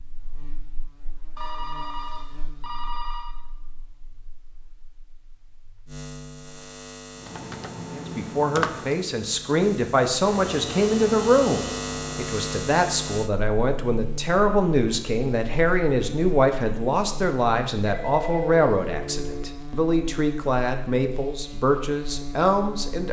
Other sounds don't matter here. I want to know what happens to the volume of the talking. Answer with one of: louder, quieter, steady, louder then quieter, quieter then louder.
steady.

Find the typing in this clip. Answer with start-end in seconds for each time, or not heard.
7.2-9.0.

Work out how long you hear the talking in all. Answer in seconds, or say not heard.
15 s.